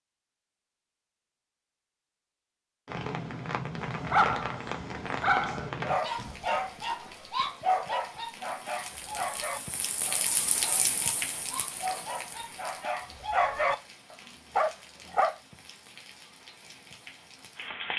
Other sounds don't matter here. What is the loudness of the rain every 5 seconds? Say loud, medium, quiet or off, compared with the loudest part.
loud, medium, loud, medium.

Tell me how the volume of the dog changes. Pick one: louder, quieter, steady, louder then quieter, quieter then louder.
quieter then louder.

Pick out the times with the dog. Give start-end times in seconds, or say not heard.
3.8-15.3.